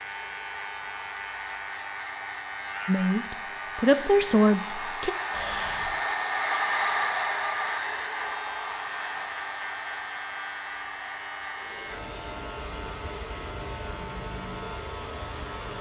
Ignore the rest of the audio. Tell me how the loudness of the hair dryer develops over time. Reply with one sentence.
The volume of the hair dryer goes up, then down.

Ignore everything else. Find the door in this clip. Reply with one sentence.
You can't hear the door here.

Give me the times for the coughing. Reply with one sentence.
You can hear the coughing from 5.3 to 6.0 s.